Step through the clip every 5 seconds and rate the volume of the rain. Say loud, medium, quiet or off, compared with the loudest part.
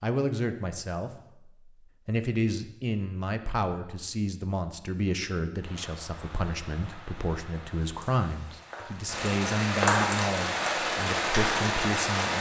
off, medium, loud.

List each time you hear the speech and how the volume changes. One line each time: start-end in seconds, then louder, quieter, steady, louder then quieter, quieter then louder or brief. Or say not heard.
0.0-12.3 steady.